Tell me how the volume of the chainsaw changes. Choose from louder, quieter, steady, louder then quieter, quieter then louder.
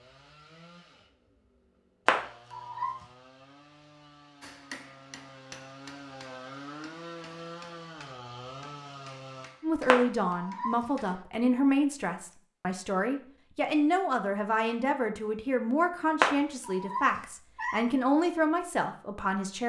louder.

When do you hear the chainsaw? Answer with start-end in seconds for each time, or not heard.
0.0-9.6.